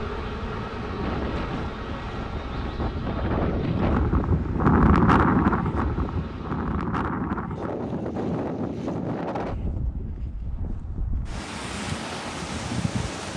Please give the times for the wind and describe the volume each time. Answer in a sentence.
The wind can be heard from 0.0 to 13.3 s, getting louder then quieter.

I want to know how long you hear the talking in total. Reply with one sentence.
You can't hear the talking here.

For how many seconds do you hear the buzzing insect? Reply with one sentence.
You can hear the buzzing insect for 7 seconds altogether.